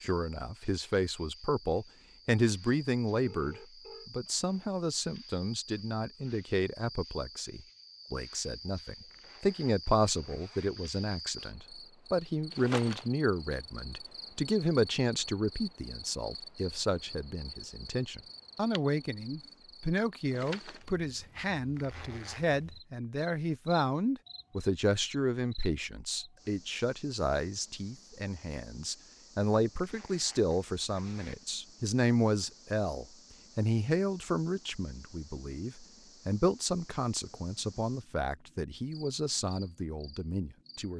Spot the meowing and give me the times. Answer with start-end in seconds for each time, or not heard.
not heard.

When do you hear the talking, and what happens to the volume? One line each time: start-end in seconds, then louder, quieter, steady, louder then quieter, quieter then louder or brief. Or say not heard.
0.0-40.9 steady.